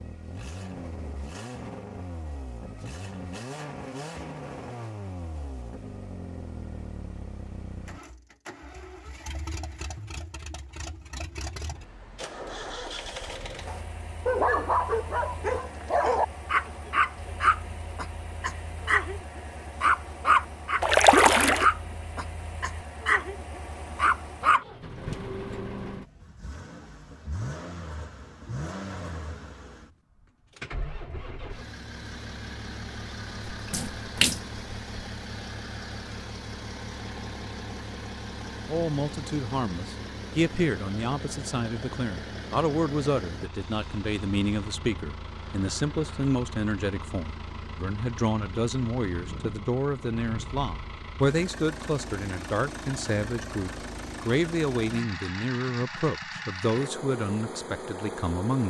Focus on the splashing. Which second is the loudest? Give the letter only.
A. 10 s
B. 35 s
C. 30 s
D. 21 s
D.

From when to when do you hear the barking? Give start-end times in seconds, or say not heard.
13.7-24.6.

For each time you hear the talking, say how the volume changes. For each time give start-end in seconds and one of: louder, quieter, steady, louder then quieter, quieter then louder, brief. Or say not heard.
38.6-58.6 steady.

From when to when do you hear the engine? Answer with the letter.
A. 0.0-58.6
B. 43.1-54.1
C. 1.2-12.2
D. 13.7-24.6
A.